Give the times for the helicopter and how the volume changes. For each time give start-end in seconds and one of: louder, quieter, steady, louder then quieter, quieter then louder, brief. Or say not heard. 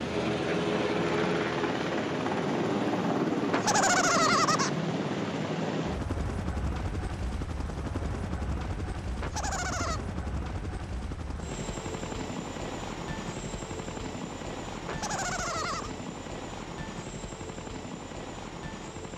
0.0-19.1 quieter.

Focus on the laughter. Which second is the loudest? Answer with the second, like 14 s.
4 s.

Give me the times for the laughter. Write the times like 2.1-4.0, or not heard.
3.5-4.7, 9.2-10.0, 14.8-15.9.